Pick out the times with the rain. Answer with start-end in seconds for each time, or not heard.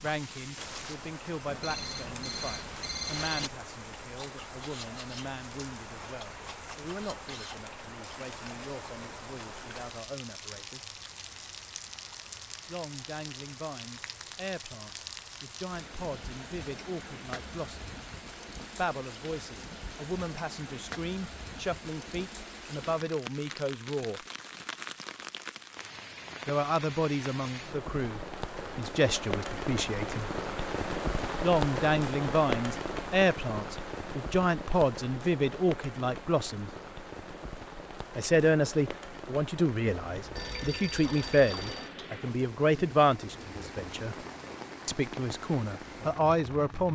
0.0-46.9.